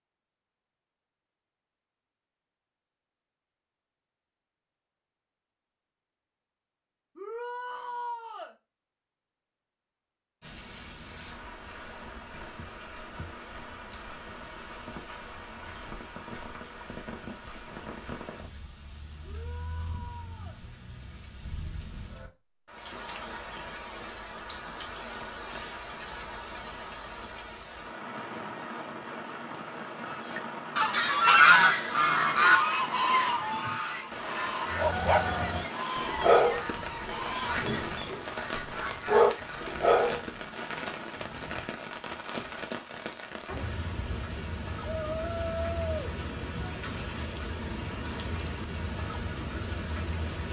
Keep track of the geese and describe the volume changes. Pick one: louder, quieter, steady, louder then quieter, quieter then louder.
quieter.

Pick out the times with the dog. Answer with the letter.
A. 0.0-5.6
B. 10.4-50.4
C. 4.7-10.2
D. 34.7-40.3
D.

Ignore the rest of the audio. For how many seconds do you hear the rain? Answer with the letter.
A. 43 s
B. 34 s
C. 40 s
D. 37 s
C.